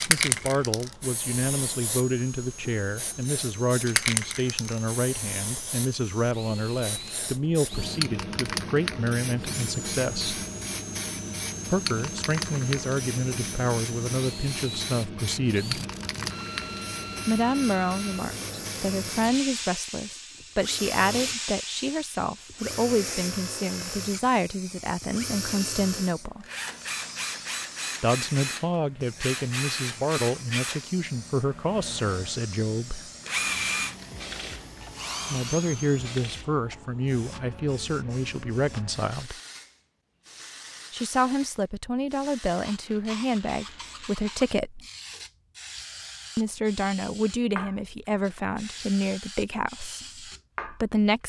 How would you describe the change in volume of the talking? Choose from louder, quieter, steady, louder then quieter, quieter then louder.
steady.